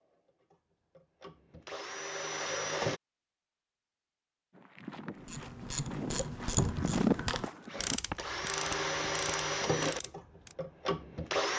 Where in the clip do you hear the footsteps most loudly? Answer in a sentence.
The volume of the footsteps peaks at 7 seconds.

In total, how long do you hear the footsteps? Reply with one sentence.
The footsteps can be heard for 5 seconds in total.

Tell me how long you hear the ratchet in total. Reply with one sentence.
You can hear the ratchet for 5 seconds altogether.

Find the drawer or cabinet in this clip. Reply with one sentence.
You can hear the drawer or cabinet from 6.5 to 7.0 s.